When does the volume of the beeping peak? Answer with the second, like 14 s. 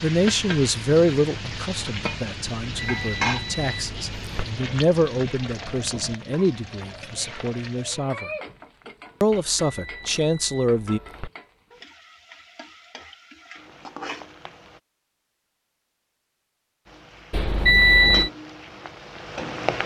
18 s.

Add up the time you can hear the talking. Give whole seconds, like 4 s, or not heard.
10 s.